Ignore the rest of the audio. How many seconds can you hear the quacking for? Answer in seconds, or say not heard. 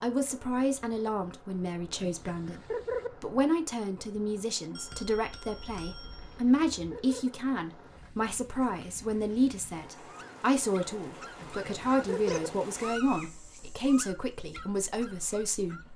3 s.